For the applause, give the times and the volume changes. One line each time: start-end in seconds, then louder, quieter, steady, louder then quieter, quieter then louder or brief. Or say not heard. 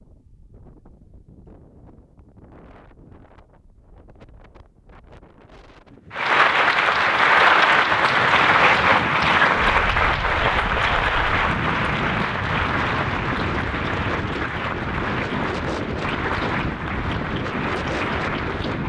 6.1-18.8 quieter.